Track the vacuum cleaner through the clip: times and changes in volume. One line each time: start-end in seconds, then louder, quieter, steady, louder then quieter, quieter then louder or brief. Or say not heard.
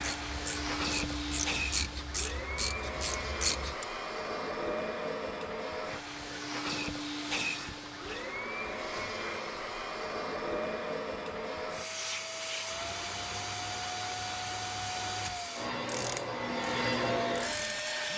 0.0-18.1 steady.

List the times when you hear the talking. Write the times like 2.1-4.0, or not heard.
not heard.